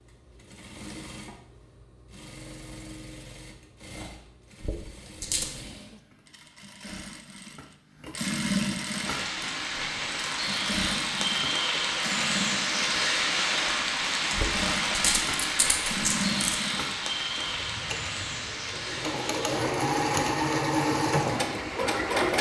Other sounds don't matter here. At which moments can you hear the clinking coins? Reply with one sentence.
The clinking coins can be heard from 4.6 to 5.5 s and from 14.3 to 16.6 s.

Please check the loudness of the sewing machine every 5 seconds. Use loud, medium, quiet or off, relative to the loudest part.
quiet, medium, medium, medium, loud.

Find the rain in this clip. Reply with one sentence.
You can hear the rain from 8.8 to 22.3 s.